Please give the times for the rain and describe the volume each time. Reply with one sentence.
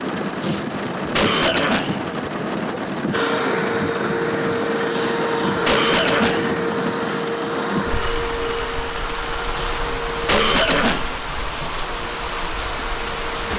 The rain can be heard from 0.0 to 13.5 s, at a steady volume.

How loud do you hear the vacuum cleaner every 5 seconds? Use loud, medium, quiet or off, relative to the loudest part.
loud, loud, medium.